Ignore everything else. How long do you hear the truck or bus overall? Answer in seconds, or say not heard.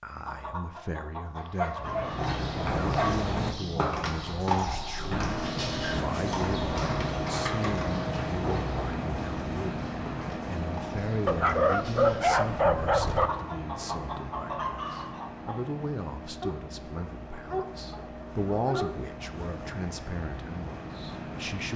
18 s.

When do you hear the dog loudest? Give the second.
12 s.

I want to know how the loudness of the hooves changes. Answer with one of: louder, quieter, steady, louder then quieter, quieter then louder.
quieter.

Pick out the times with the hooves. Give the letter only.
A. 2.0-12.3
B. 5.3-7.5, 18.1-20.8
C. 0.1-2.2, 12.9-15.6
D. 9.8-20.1
A.